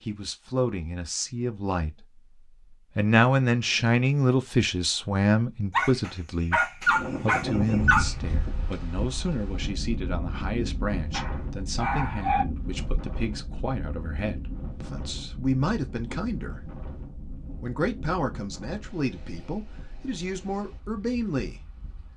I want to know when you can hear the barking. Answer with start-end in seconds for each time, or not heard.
5.7-8.1, 11.1-12.4.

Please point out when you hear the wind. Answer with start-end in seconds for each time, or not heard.
6.8-22.1.